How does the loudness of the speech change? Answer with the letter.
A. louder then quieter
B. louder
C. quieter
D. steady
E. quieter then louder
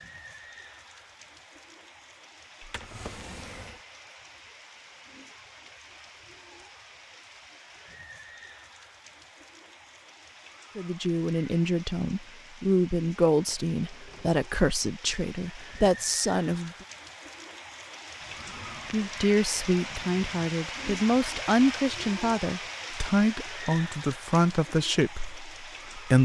D.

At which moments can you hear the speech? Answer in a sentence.
The speech can be heard from 10.8 to 16.7 s and from 18.9 to 26.1 s.